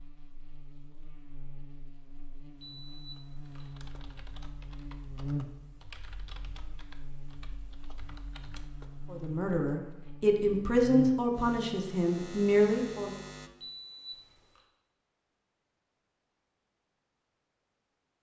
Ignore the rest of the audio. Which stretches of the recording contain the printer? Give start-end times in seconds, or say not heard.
not heard.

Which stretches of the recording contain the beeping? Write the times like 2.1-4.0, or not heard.
2.6-3.8, 13.6-14.7.